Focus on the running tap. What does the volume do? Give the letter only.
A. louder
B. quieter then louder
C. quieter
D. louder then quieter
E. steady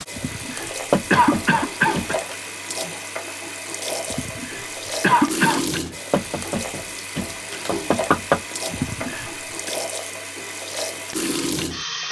E.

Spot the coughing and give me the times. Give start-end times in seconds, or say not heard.
0.1-2.1, 4.0-5.8, 8.7-9.7.